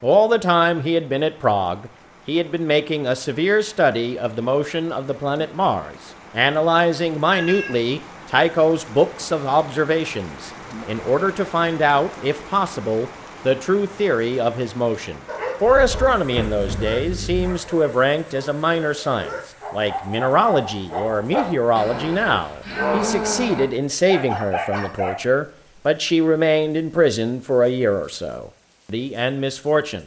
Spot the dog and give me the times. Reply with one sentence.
The dog can be heard from 15.2 to 25.1 s.